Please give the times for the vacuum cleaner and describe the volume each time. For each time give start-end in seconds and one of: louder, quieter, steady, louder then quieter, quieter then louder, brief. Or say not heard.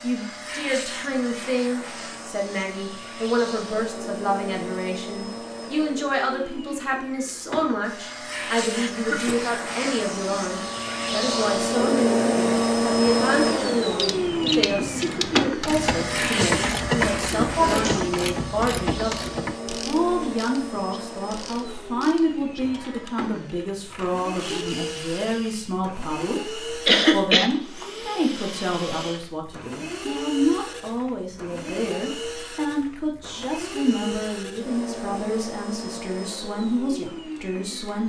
0.0-38.0 louder then quieter.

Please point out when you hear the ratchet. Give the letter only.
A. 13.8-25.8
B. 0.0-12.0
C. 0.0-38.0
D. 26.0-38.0
A.